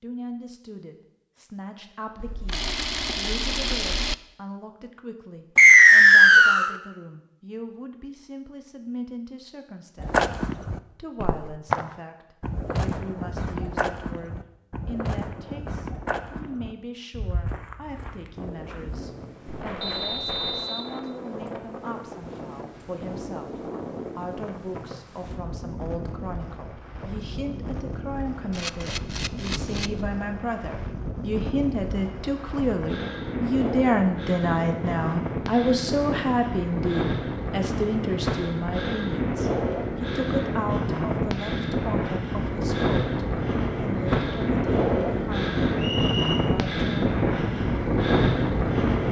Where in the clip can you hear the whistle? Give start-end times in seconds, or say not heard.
5.5-6.7, 19.8-20.9, 45.8-46.4.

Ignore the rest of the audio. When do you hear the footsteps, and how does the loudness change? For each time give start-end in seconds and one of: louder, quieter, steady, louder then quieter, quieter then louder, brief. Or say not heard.
10.0-20.6 quieter.